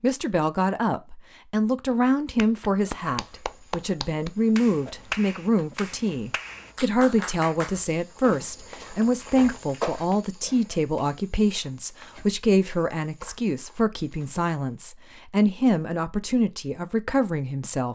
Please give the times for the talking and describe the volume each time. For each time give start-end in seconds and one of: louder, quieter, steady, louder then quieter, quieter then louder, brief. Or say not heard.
0.0-17.9 steady.